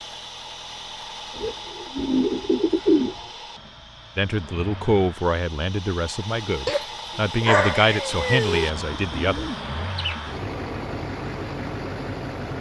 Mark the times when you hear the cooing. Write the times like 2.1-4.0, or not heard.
1.4-3.2, 8.1-10.4.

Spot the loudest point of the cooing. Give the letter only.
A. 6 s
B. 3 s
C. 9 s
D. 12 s
B.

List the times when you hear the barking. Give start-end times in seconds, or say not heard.
6.7-8.7.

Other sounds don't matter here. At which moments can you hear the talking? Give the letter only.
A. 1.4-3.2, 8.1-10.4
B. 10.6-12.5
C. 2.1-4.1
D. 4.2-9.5
D.